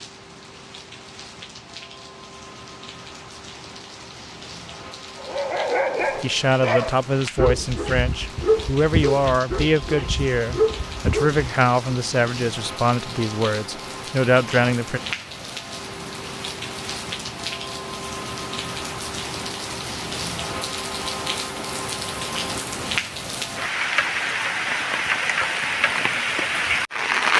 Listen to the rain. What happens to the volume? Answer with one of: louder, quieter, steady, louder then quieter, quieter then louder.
louder.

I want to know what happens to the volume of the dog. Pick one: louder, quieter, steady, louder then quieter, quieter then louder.
steady.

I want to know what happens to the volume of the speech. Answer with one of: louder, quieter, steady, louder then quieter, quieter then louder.
steady.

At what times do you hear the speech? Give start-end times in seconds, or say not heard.
6.2-15.0.